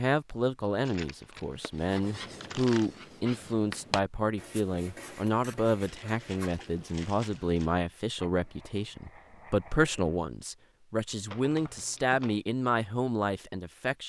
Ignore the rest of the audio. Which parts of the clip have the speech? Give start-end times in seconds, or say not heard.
0.0-14.0.